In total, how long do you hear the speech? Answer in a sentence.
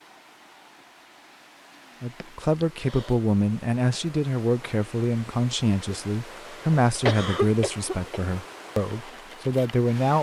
You can hear the speech for 8 seconds altogether.